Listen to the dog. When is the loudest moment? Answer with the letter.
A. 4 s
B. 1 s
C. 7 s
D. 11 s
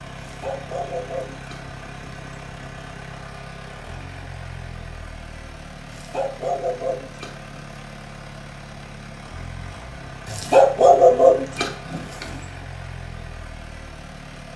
D.